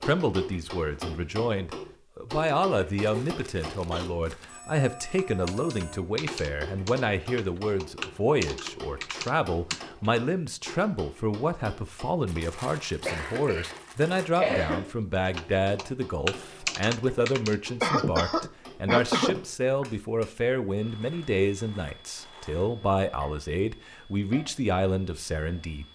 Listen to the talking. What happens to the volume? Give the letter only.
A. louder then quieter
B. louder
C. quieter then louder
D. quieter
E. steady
E.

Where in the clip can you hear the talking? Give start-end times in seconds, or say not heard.
0.0-25.9.